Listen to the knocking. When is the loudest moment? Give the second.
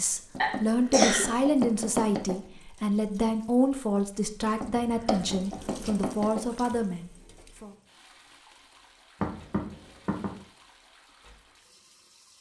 1 s.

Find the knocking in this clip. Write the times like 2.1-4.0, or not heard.
0.3-2.4, 4.4-6.4, 9.2-10.3.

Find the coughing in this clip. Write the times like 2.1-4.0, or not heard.
0.4-1.2.